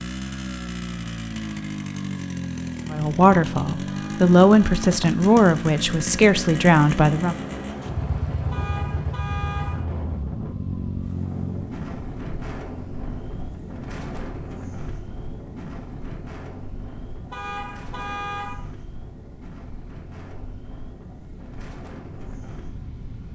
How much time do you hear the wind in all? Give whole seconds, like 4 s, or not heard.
16 s.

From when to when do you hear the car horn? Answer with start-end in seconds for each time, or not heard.
3.9-5.0, 8.5-9.8, 17.3-18.6.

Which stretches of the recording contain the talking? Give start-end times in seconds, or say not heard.
2.9-7.3.